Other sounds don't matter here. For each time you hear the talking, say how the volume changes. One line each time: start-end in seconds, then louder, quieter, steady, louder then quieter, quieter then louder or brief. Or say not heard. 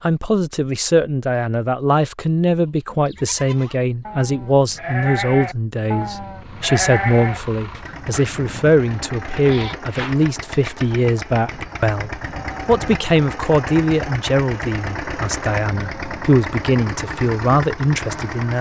0.0-18.5 steady.